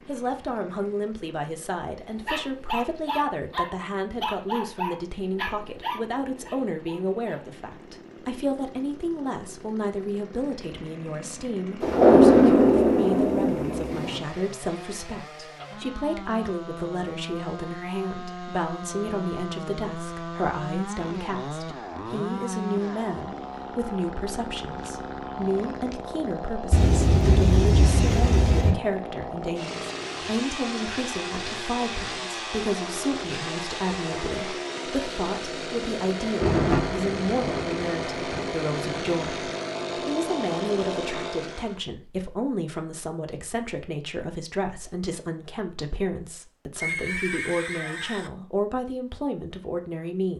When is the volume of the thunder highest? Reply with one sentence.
The volume of the thunder peaks at 12 seconds.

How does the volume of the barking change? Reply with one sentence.
The volume of the barking goes down.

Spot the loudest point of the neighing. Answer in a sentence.
The loudest moment of the neighing is at 47 seconds.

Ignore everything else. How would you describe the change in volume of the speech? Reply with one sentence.
The loudness of the speech stays about the same.